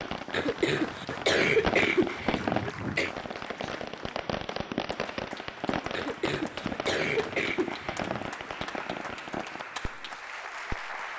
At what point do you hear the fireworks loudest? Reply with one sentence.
The volume of the fireworks peaks at 2 seconds.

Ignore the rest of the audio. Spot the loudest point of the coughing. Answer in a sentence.
The volume of the coughing peaks at 1 second.